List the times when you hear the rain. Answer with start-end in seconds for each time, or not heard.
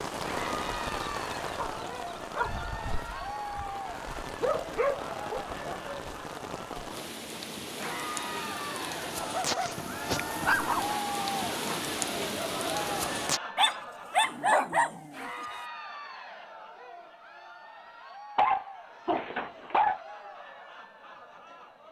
0.0-13.4.